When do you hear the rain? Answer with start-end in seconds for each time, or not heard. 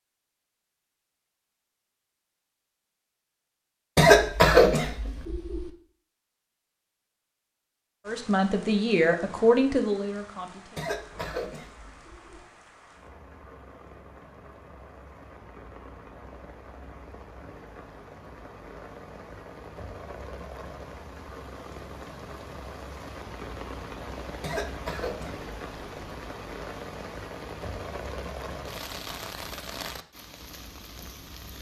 8.1-31.5.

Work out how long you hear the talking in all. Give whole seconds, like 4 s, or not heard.
3 s.